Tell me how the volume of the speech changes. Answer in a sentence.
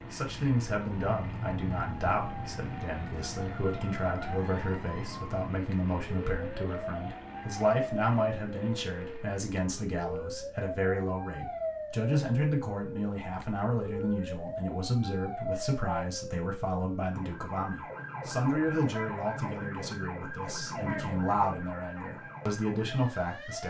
The loudness of the speech stays about the same.